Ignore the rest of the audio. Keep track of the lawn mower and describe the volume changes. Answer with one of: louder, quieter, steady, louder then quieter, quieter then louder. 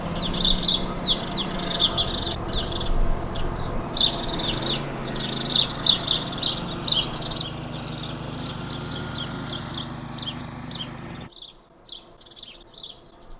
steady.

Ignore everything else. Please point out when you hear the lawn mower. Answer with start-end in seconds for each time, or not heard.
0.0-11.3.